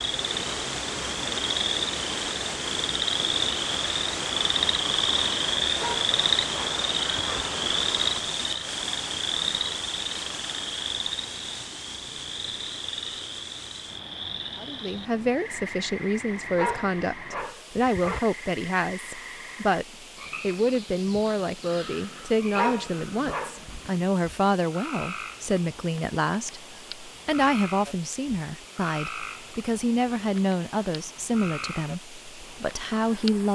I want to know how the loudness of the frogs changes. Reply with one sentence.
The loudness of the frogs goes down.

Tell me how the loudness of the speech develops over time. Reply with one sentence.
The volume of the speech stays about the same.